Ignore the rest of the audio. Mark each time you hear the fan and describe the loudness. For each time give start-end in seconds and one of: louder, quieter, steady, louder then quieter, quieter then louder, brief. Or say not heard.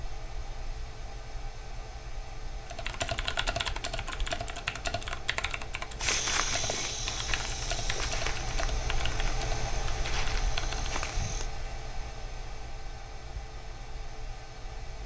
0.0-15.0 louder then quieter.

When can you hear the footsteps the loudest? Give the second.
6 s.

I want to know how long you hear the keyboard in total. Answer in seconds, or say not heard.
8 s.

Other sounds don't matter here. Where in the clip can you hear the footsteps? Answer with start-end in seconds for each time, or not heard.
6.0-11.5.